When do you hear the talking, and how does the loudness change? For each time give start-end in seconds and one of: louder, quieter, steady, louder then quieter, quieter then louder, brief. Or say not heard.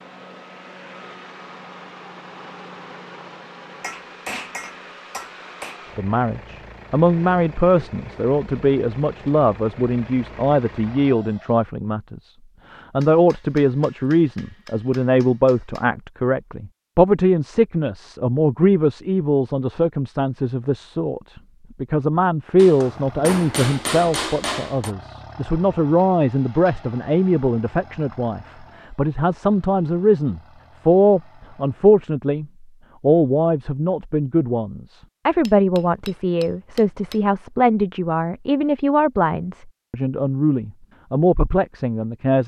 6.0-42.4 steady.